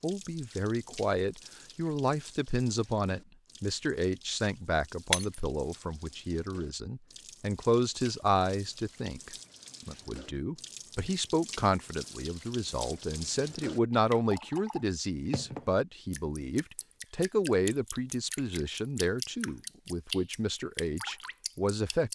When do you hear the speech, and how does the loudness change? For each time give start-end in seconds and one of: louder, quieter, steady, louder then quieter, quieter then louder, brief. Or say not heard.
0.0-22.1 steady.